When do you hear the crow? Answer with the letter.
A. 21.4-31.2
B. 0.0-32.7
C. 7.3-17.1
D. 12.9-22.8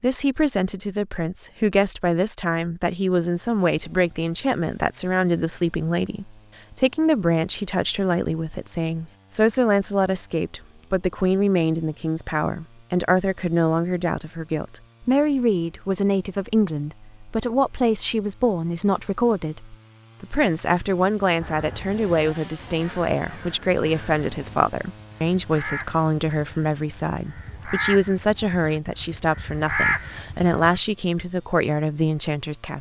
A.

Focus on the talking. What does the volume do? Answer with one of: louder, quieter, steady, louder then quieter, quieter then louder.
steady.